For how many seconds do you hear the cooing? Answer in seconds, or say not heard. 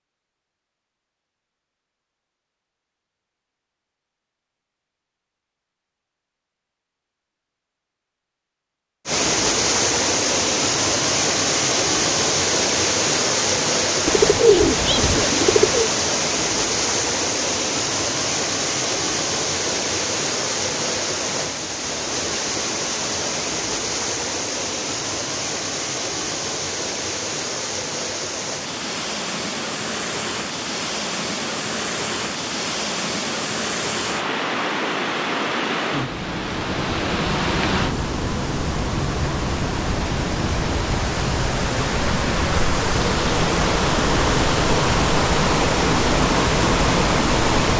2 s.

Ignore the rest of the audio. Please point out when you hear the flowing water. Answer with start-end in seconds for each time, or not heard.
9.1-47.7.